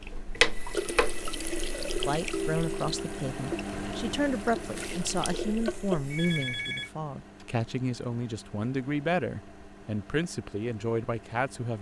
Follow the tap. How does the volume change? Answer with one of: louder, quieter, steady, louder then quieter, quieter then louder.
quieter then louder.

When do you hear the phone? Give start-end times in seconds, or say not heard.
2.3-3.1, 6.1-6.9.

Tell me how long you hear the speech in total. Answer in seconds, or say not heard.
10 s.